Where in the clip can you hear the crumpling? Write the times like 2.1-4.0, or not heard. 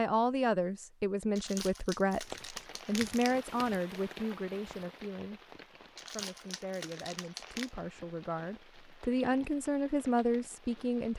1.4-3.5, 6.0-7.7.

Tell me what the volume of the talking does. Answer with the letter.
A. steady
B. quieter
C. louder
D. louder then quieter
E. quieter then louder
E.